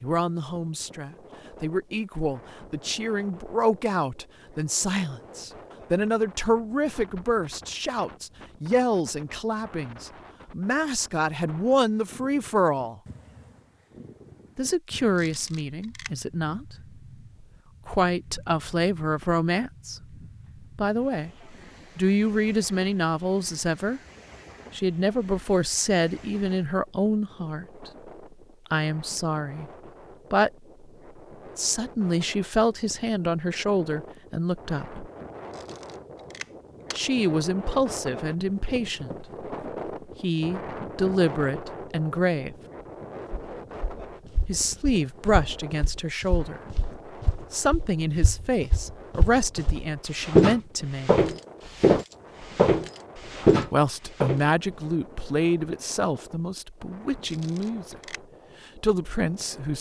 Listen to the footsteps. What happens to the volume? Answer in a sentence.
The loudness of the footsteps goes up.